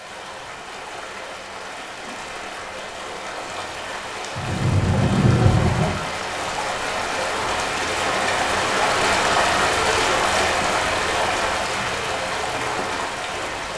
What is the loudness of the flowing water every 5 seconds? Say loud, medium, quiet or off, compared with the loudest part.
medium, loud, loud.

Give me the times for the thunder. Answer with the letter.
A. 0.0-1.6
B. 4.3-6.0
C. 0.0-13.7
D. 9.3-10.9
B.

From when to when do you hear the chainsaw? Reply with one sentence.
The chainsaw can't be heard in this clip.